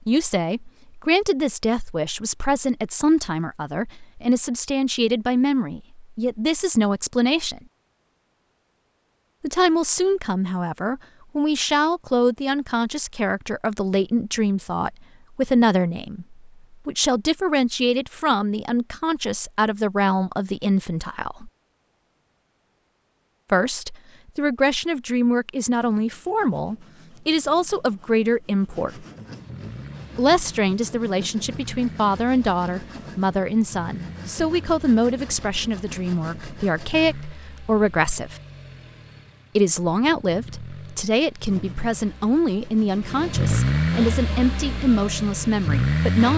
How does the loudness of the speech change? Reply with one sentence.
The loudness of the speech stays about the same.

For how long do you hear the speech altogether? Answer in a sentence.
You can hear the speech for 40 seconds altogether.